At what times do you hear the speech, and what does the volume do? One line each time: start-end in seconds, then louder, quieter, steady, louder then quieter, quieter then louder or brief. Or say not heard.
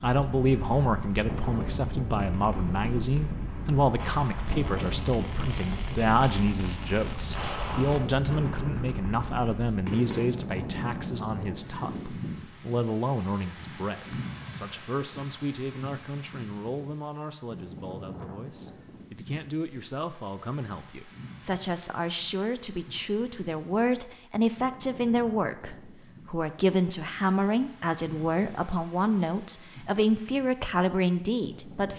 0.0-31.9 quieter then louder.